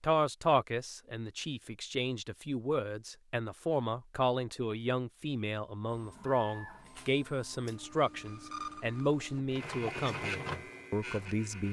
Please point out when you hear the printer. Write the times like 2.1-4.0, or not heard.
5.9-11.6.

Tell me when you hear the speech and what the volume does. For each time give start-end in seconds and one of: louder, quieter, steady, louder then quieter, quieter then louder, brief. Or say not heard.
0.0-11.6 steady.